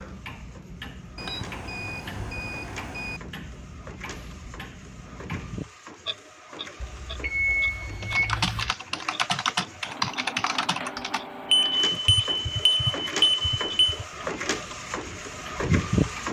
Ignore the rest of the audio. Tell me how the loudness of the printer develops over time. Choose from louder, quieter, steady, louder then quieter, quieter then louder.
louder.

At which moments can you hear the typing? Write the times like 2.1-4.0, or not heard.
8.0-14.1.